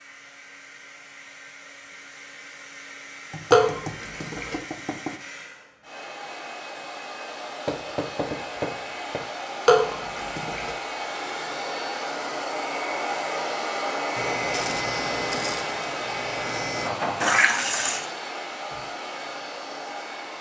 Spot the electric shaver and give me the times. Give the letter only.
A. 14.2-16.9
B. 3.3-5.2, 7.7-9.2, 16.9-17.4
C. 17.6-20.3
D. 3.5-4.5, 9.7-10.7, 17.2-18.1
A.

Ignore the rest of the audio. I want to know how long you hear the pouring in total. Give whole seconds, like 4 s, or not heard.
3 s.